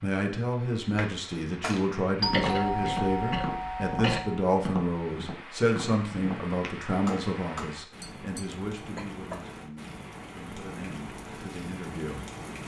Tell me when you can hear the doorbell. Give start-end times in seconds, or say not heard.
2.2-4.5.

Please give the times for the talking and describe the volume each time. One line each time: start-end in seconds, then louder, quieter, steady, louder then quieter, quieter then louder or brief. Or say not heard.
0.0-12.6 quieter.